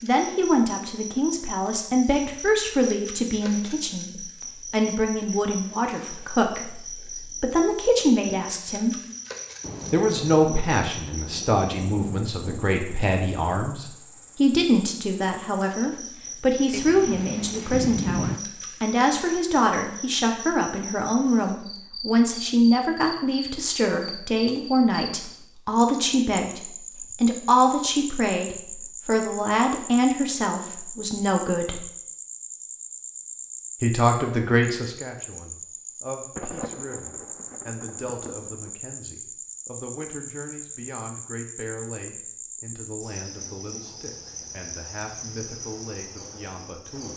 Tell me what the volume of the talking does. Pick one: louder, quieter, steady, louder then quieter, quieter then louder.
quieter.